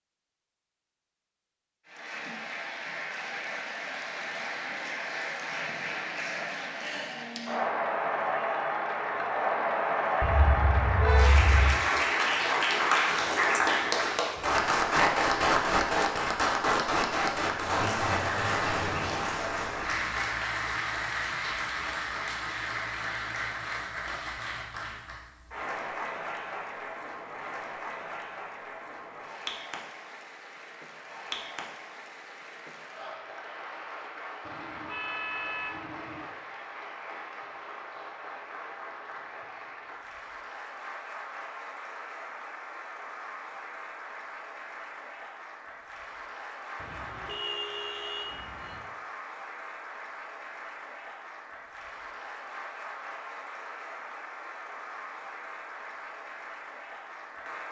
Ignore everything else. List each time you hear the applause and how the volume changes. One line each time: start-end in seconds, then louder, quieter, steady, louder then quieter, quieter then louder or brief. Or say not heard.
1.9-57.6 quieter.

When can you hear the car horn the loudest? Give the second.
11 s.